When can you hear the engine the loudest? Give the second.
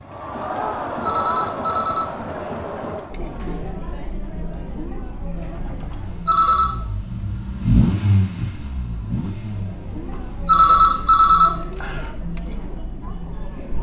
8 s.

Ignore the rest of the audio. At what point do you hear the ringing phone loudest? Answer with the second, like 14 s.
11 s.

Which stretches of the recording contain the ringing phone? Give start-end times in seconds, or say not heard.
1.1-2.6, 5.9-6.8, 10.4-12.1.